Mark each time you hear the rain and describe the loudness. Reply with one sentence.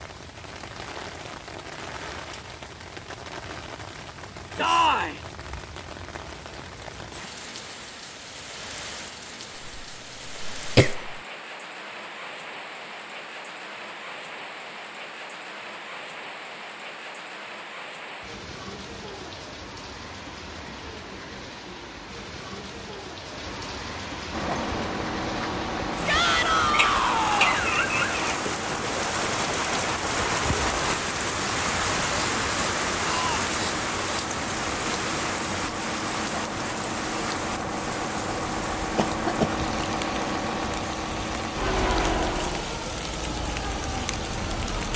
You can hear the rain from 0.0 to 44.9 s, getting louder then quieter.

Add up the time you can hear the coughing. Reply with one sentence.
You can hear the coughing for 4 seconds altogether.